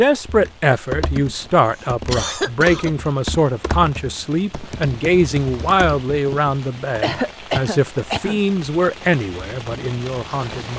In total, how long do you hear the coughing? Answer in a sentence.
The coughing can be heard for 2 seconds in total.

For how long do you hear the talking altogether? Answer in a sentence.
The talking can be heard for 11 seconds in total.